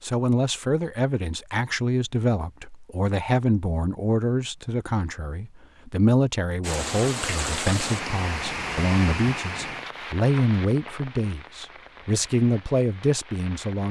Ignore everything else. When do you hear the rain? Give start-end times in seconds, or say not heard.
6.6-13.8.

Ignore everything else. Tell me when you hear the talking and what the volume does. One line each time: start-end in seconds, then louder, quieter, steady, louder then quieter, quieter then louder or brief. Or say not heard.
0.0-13.8 steady.